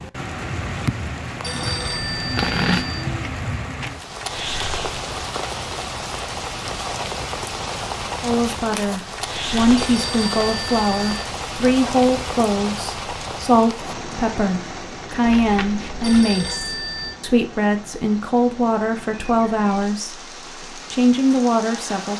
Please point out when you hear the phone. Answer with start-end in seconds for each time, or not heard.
1.4-3.0, 9.8-11.2, 16.0-17.1.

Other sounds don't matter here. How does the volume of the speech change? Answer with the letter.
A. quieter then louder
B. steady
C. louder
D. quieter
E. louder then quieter
B.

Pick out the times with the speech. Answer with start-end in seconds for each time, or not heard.
8.2-22.1.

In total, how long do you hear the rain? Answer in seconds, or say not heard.
22 s.